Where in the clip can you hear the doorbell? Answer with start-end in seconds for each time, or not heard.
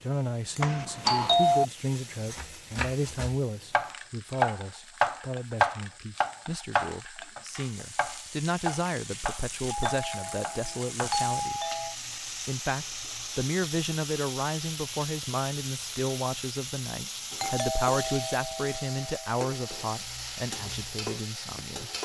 0.6-1.6, 9.7-11.9, 17.4-19.9.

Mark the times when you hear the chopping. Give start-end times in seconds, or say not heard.
2.4-11.7.